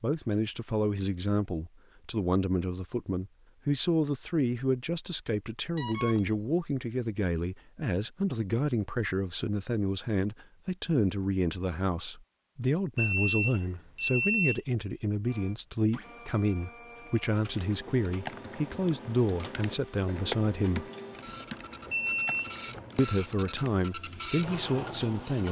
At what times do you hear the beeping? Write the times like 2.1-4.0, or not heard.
5.8-6.4, 12.9-14.6, 21.9-22.4.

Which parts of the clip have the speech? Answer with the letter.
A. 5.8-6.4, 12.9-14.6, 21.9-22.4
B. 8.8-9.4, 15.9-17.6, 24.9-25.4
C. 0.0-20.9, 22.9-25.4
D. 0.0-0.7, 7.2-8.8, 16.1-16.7
C.